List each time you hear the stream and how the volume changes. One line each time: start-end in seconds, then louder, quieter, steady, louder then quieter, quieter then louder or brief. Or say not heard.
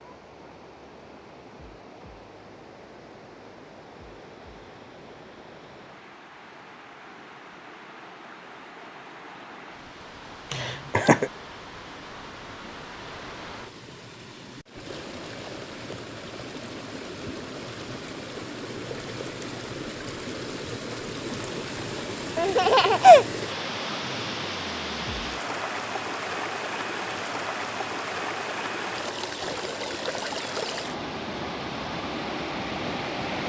0.0-33.4 louder.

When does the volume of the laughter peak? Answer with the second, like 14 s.
23 s.